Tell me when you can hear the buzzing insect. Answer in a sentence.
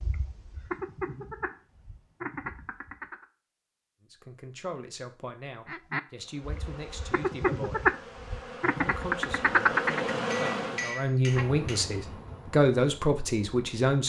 You can hear the buzzing insect from 6.2 to 13.9 s.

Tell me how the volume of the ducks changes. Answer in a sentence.
The loudness of the ducks goes up.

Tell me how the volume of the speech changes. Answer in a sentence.
The volume of the speech goes up.